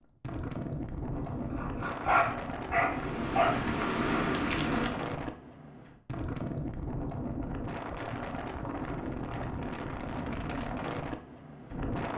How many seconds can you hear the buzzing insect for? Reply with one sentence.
You can hear the buzzing insect for 2 seconds altogether.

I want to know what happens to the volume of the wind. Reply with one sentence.
The volume of the wind stays about the same.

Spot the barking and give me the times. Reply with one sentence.
You can hear the barking from 1.1 to 3.5 s.